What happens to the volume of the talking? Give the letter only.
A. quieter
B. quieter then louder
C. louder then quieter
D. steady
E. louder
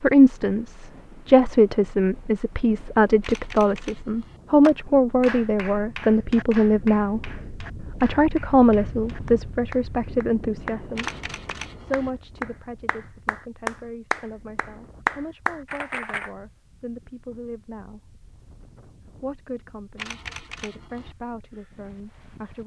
A.